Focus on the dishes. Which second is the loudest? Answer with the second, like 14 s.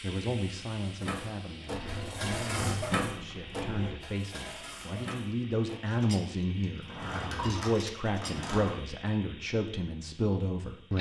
3 s.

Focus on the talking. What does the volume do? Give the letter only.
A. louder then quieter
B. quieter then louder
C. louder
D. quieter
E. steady
C.